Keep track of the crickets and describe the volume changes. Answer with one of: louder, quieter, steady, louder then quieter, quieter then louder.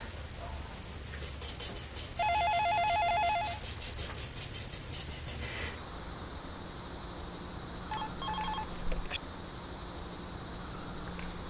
steady.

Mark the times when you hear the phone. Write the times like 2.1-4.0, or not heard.
2.1-3.6, 7.9-9.2.